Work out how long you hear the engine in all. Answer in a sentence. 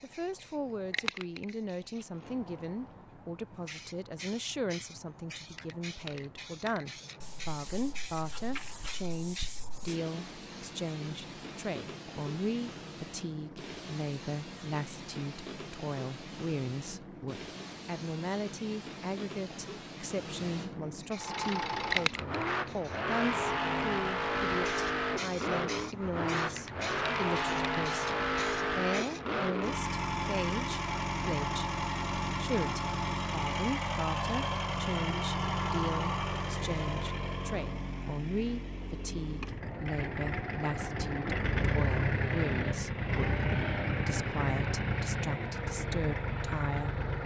The engine can be heard for 26 seconds in total.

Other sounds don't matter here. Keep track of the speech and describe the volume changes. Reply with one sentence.
The loudness of the speech stays about the same.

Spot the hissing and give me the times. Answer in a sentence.
You can hear the hissing from 0.0 to 29.4 s.